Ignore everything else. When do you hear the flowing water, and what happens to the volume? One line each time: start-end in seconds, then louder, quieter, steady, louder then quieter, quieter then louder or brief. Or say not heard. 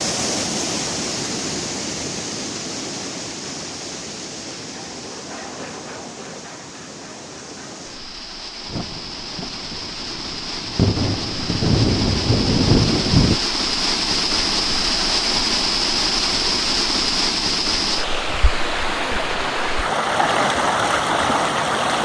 0.0-21.9 quieter then louder.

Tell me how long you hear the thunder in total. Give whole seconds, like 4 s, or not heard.
5 s.